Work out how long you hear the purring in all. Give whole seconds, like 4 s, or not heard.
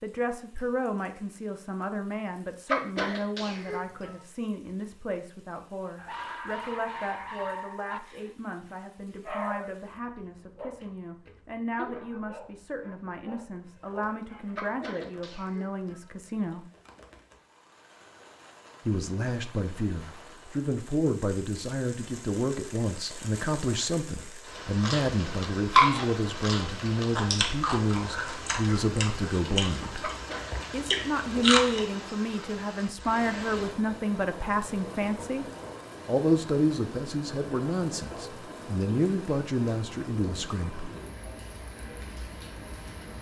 not heard.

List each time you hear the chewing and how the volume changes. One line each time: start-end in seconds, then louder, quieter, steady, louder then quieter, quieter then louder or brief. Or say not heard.
24.8-31.9 quieter.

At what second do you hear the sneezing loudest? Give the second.
3 s.